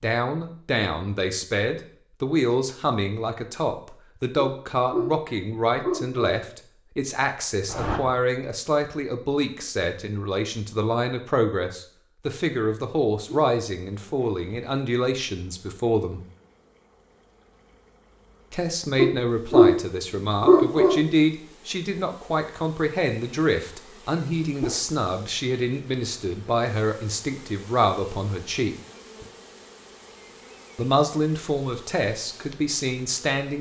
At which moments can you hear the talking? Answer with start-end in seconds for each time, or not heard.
0.0-16.2, 18.5-28.8, 30.8-33.5.